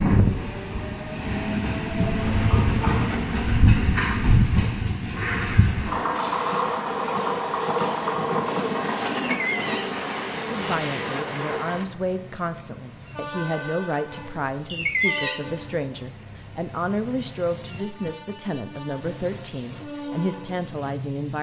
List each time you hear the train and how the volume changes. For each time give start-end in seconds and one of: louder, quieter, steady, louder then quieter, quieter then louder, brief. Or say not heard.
0.0-21.3 quieter.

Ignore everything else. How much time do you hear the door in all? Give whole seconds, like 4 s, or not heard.
3 s.